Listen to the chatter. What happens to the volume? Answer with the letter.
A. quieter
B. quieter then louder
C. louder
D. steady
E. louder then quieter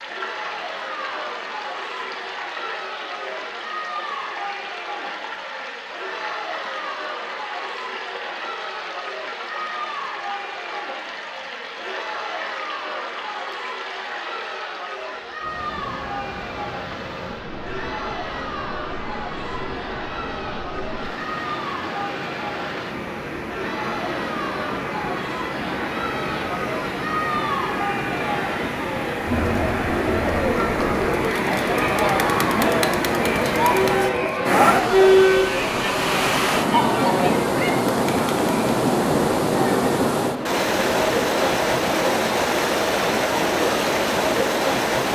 C.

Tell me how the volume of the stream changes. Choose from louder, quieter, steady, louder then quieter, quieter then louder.
louder.